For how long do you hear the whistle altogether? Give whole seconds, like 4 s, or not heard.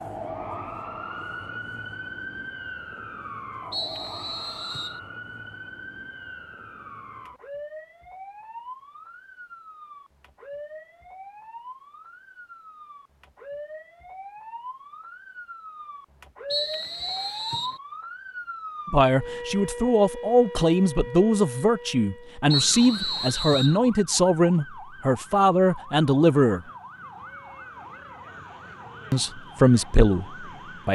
4 s.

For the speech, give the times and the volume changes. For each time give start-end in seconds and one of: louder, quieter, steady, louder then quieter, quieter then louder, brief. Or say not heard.
18.9-26.6 steady
29.1-30.8 brief.